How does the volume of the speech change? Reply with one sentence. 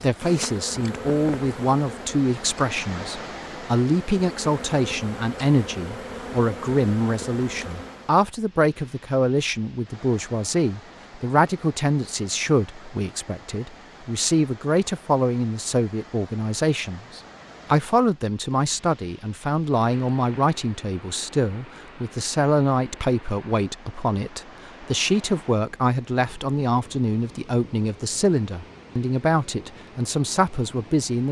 The volume of the speech stays about the same.